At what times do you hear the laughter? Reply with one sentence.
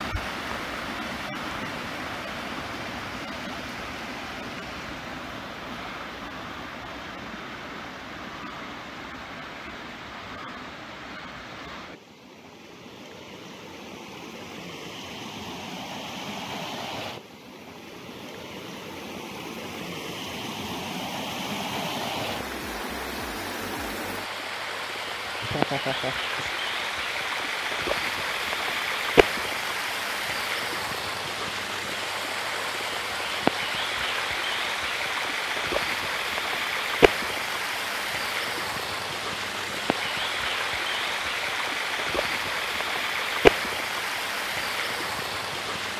You can hear the laughter from 25.4 to 26.6 s.